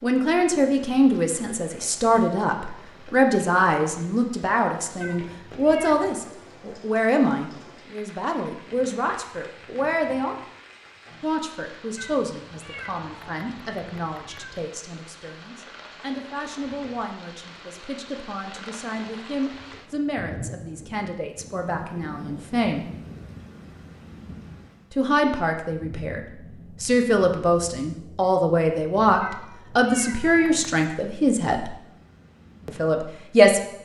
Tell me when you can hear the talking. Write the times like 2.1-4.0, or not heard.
0.0-10.4, 11.2-22.9, 24.9-26.2, 26.8-31.8, 32.6-33.8.